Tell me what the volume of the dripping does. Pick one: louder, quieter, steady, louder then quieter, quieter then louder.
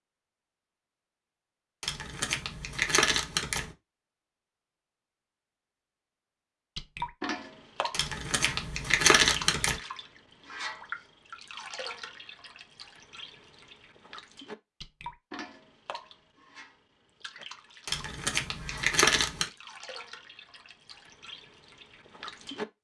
quieter.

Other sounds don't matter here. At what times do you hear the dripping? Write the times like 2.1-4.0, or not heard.
6.8-22.6.